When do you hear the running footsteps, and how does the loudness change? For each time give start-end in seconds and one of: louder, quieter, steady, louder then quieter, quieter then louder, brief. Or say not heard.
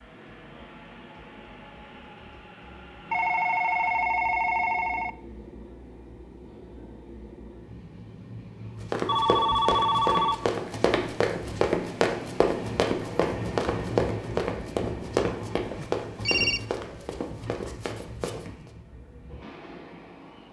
8.8-18.7 quieter.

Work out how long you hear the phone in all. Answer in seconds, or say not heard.
4 s.